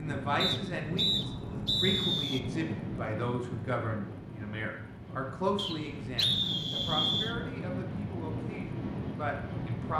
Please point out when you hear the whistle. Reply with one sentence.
The whistle can be heard from 0.4 to 2.4 s and from 5.5 to 7.3 s.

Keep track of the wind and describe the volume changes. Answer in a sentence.
The loudness of the wind goes down, then up.